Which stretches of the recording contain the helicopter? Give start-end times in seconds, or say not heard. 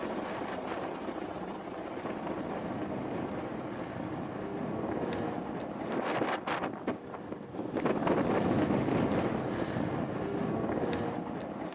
0.0-5.7.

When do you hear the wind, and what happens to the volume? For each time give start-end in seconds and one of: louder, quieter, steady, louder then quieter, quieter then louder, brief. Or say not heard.
0.0-11.6 louder.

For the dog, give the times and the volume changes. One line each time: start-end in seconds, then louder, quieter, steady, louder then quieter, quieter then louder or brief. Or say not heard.
not heard.